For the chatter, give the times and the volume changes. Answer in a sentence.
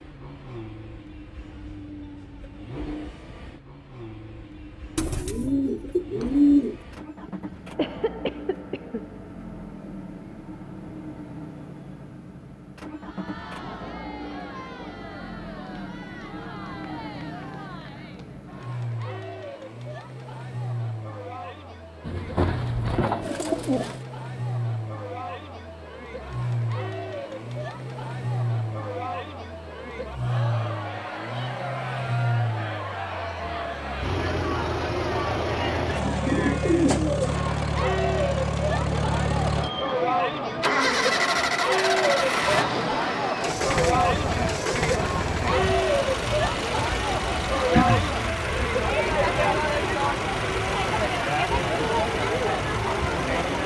You can hear the chatter from 12.9 to 53.6 s, getting louder.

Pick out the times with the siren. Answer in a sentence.
You can't hear the siren here.